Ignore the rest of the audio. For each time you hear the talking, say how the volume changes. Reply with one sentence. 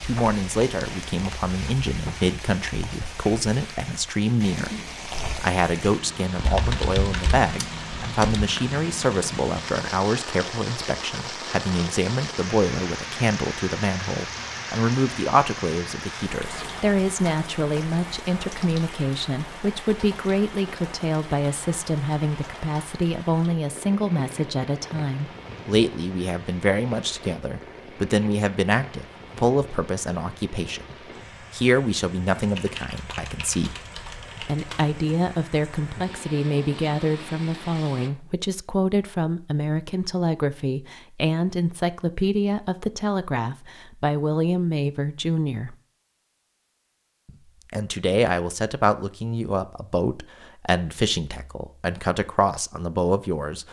The talking can be heard from 0.0 to 33.8 s, at a steady volume; from 34.4 to 45.8 s, at a steady volume; and from 47.2 to 53.6 s, at a steady volume.